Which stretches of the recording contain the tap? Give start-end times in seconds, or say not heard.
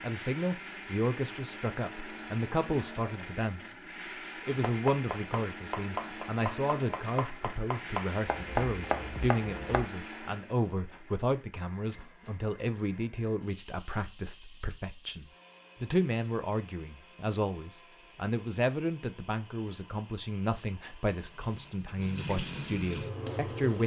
21.2-23.8.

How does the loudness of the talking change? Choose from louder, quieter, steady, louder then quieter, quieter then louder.
steady.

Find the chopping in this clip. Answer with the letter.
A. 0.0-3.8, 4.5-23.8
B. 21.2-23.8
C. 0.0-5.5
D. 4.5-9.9
D.